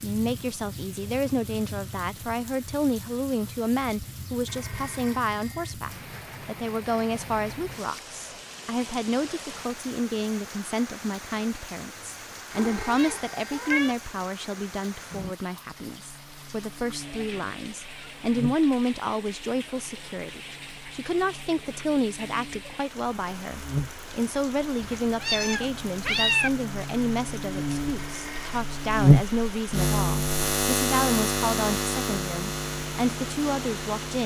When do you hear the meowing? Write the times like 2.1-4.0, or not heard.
12.6-13.9, 24.8-26.5.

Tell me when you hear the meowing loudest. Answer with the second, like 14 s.
26 s.